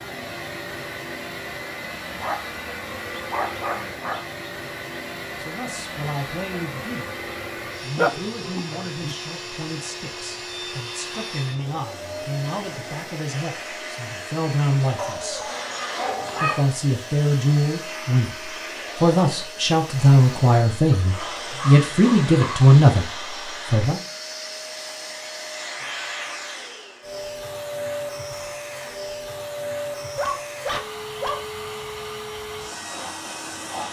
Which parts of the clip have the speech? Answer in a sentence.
The speech can be heard from 5.3 to 7.2 s, from 7.8 to 15.5 s and from 16.4 to 24.0 s.